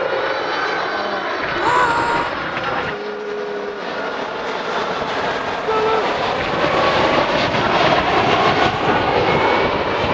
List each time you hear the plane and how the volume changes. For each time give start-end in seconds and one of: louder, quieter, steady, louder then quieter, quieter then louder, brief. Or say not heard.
0.0-10.0 louder.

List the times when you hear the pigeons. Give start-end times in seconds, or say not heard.
1.4-3.0, 6.3-8.3.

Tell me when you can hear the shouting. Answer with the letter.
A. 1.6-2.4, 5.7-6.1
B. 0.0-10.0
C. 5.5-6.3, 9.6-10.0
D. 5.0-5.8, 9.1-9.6
A.